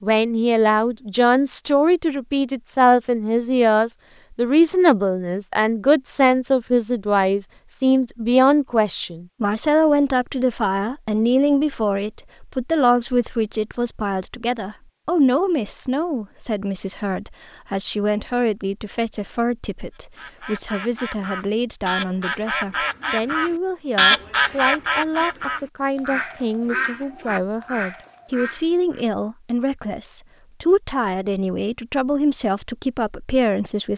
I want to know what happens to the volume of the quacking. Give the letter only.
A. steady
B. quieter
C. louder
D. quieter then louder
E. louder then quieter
E.